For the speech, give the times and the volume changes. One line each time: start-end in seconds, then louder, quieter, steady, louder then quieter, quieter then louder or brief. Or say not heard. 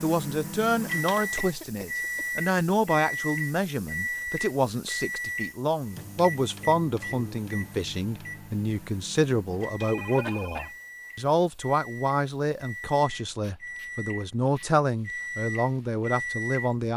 0.0-16.9 steady.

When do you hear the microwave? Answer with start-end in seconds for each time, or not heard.
0.0-16.8.